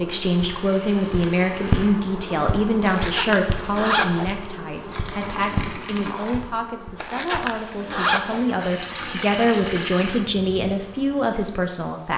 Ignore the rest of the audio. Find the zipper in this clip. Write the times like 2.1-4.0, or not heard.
2.9-4.3, 7.0-8.4.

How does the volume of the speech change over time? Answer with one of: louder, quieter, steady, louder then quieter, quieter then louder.
quieter then louder.